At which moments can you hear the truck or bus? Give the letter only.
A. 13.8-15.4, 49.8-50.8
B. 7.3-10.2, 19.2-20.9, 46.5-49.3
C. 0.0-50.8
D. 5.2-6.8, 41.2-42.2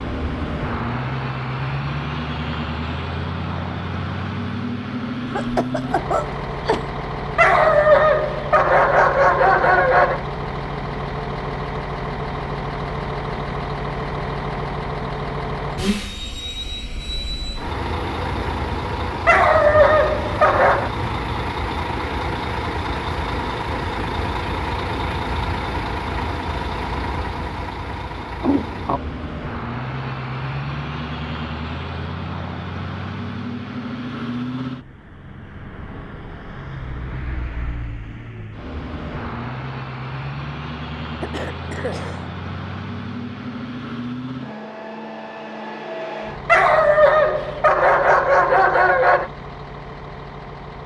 C.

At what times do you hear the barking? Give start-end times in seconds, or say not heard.
7.3-10.2, 19.2-20.9, 46.5-49.3.